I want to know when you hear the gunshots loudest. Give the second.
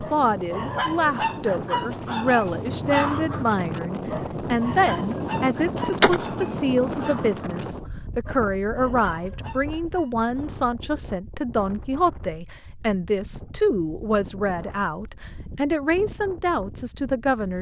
6 s.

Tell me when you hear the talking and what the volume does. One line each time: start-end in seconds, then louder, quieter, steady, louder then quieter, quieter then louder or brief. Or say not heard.
0.0-17.5 steady.